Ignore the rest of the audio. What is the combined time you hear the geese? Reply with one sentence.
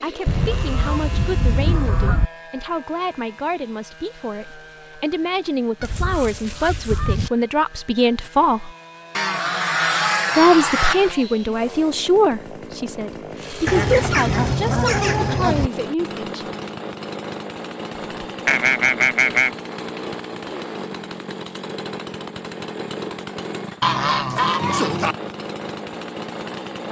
The geese can be heard for 10 seconds in total.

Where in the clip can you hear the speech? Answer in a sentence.
The speech can be heard from 0.0 to 8.7 s and from 10.3 to 16.4 s.